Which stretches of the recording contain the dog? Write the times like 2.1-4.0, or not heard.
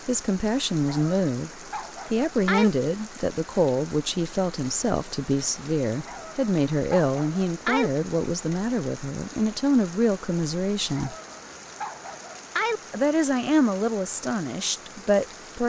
0.8-2.7, 6.0-7.9, 10.9-12.8.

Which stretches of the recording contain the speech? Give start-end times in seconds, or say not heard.
0.1-11.2, 12.9-15.6.